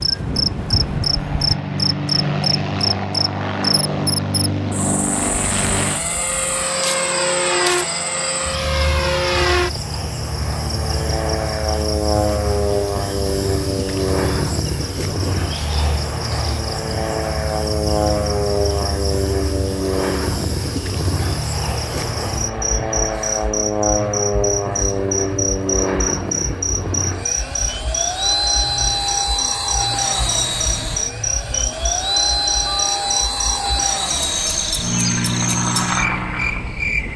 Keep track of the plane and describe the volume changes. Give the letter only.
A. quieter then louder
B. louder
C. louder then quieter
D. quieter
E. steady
E.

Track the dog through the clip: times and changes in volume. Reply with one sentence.
You can't hear the dog here.